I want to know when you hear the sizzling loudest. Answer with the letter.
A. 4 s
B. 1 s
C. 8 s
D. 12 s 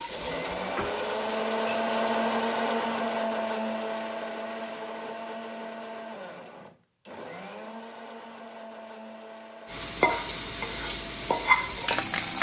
D.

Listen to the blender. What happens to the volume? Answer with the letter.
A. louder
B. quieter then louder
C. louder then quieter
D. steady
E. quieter
E.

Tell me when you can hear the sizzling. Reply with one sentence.
You can hear the sizzling from 0.0 to 2.5 s and from 9.7 to 12.3 s.